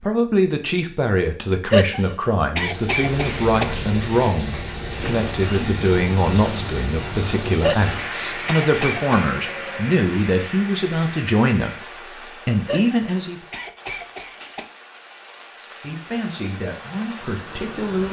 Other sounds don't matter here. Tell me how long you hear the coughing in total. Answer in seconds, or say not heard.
6 s.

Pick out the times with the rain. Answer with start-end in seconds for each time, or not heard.
2.5-18.0.